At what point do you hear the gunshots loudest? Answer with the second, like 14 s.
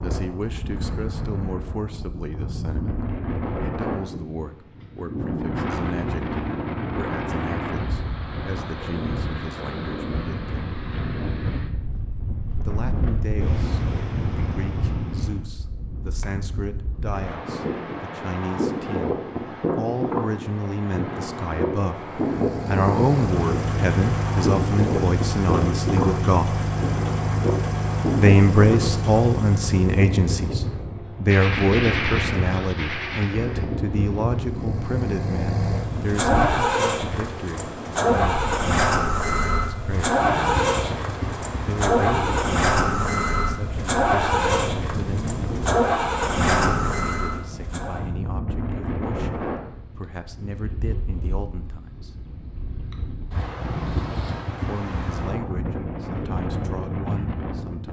32 s.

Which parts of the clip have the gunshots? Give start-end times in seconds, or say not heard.
31.2-33.6.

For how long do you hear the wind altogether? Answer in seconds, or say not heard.
58 s.